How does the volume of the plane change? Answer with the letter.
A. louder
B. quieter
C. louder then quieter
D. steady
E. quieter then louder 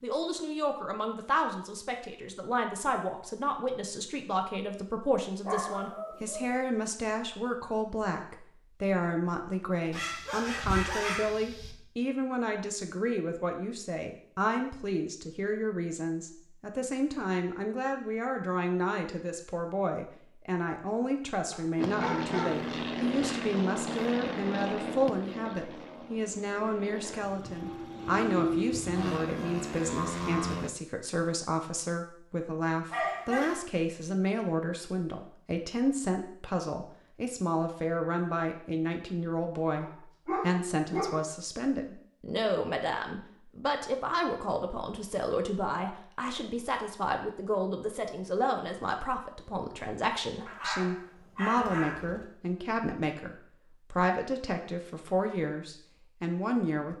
E.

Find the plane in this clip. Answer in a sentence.
The plane can be heard from 21.8 to 30.7 s.